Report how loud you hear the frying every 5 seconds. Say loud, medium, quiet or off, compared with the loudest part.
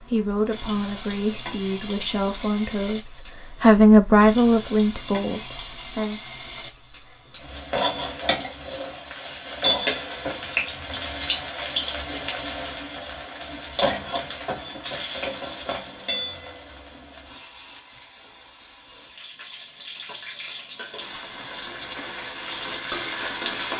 medium, loud, loud, medium, loud.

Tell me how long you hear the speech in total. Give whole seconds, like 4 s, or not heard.
6 s.